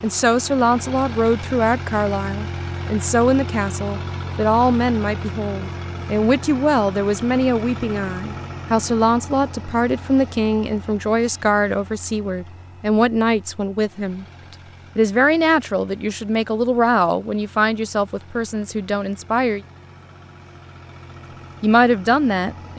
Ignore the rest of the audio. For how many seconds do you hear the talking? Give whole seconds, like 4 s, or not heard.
20 s.